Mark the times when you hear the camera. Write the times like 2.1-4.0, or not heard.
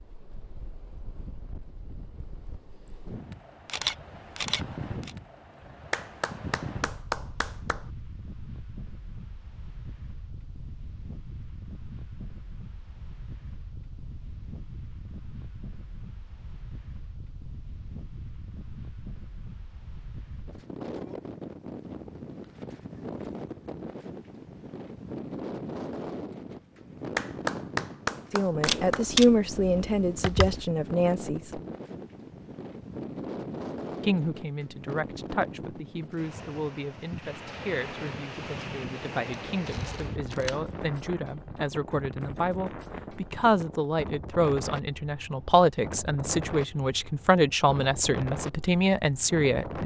3.6-5.1, 28.6-30.6, 39.5-41.0.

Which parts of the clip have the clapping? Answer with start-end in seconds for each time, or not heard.
5.9-7.8, 27.1-29.1.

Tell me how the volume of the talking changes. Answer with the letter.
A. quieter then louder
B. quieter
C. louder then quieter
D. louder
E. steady
A.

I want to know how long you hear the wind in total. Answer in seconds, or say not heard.
50 s.